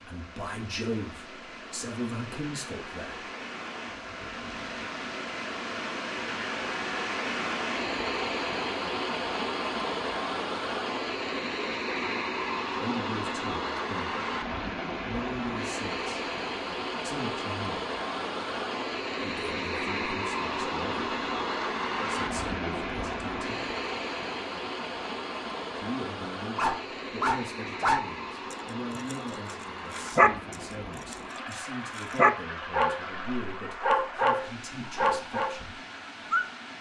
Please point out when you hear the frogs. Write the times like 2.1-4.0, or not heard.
not heard.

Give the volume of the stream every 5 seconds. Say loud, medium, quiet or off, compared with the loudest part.
medium, loud, loud, loud, loud, medium, medium, medium.